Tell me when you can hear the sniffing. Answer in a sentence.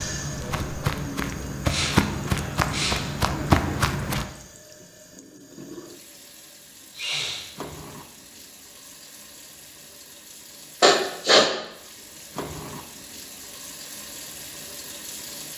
You can hear the sniffing from 1.6 to 3.0 s, from 7.0 to 7.5 s and from 10.8 to 11.6 s.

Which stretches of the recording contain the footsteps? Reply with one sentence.
The footsteps can be heard from 0.0 to 4.2 s.